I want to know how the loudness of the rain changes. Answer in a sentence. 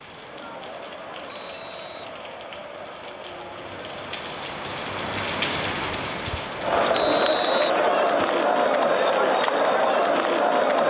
The volume of the rain goes up, then down.